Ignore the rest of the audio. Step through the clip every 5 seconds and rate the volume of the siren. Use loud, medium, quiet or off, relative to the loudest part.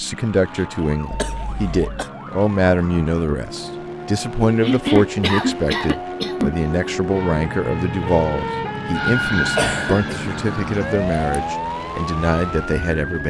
medium, loud, loud.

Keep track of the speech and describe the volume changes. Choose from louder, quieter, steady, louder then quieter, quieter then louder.
steady.